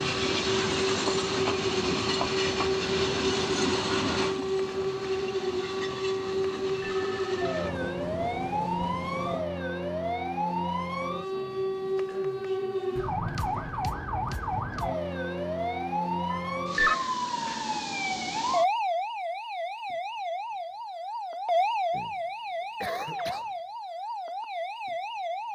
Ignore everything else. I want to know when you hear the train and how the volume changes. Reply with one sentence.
You can hear the train from 0.0 to 9.4 s, getting quieter.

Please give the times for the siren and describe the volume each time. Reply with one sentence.
The siren can be heard from 0.0 to 25.5 s, at a steady volume.